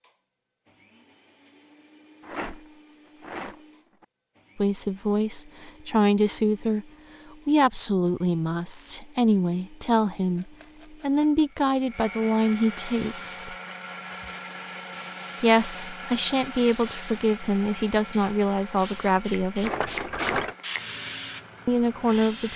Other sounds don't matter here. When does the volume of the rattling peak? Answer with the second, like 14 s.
20 s.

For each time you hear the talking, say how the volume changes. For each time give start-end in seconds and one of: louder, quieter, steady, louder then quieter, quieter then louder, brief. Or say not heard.
4.5-6.8 brief
7.5-13.6 steady
15.4-19.8 steady
21.6-22.5 brief.